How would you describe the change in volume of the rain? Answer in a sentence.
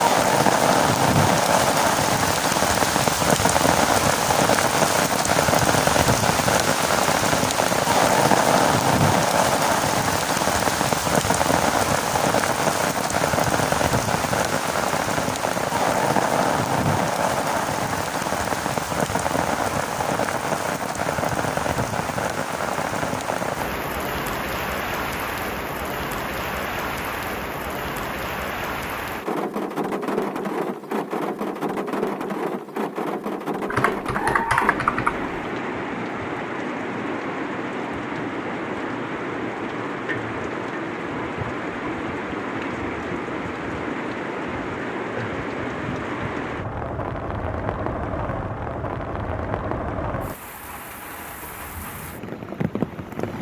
The loudness of the rain goes down.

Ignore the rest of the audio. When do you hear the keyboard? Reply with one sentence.
You can hear the keyboard from 33.6 to 35.3 s.